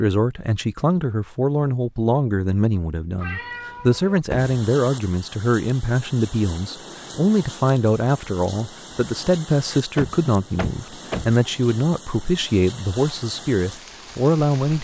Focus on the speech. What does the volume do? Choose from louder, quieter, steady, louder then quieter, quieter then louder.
steady.